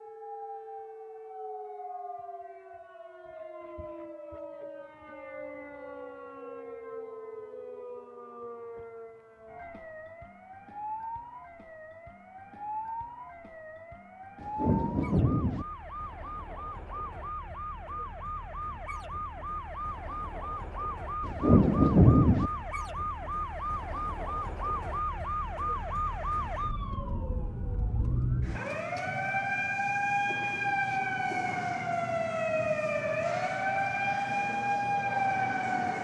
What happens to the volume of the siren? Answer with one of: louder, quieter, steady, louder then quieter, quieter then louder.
louder.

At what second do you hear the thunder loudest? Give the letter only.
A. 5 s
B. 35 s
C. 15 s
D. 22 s
D.